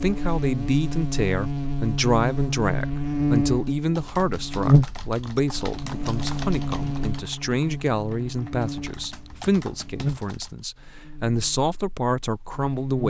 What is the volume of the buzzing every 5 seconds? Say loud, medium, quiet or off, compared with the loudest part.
loud, medium, medium.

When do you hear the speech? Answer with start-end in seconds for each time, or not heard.
0.0-13.0.